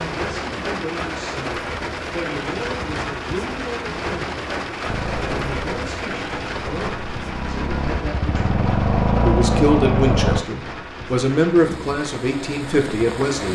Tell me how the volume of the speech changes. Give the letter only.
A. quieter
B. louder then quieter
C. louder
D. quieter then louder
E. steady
C.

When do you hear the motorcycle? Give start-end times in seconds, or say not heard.
4.8-10.4.